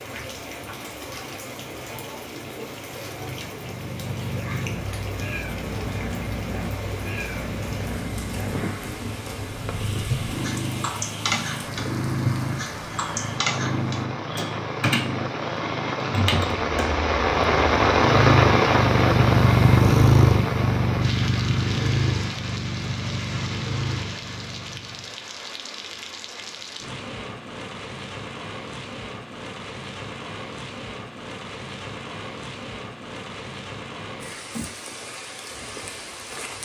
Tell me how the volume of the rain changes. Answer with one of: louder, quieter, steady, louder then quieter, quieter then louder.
louder then quieter.